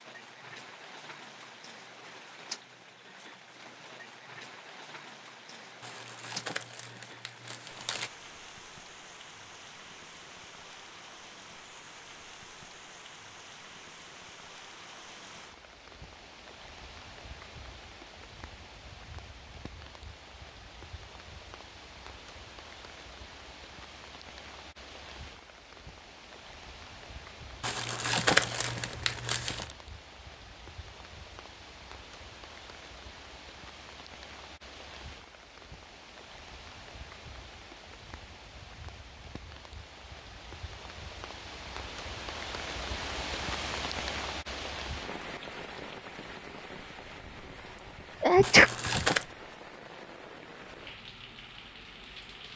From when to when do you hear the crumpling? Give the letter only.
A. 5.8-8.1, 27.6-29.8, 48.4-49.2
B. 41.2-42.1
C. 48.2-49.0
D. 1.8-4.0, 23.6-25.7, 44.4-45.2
A.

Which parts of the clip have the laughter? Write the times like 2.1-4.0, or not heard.
not heard.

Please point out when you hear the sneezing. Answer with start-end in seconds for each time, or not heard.
48.2-49.0.